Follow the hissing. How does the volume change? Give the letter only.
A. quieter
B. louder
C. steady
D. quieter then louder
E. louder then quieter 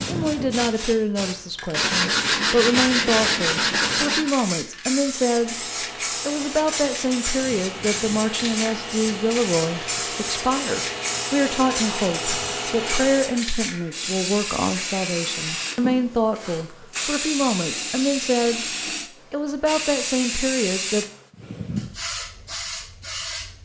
C.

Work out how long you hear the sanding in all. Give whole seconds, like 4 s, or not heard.
3 s.